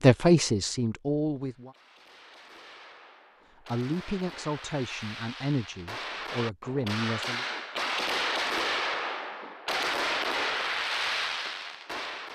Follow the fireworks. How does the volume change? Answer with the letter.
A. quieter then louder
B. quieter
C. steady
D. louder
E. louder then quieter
D.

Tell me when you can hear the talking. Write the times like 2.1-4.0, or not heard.
0.0-1.8, 3.6-7.5.